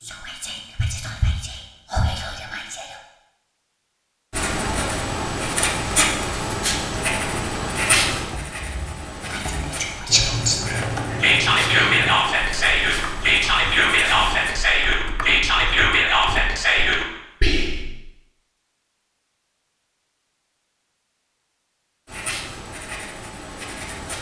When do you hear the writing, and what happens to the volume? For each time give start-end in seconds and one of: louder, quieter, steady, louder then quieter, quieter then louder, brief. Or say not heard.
4.3-14.6 quieter
22.1-24.1 brief.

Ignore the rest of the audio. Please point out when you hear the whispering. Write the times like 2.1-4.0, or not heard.
0.0-3.0, 9.2-17.9.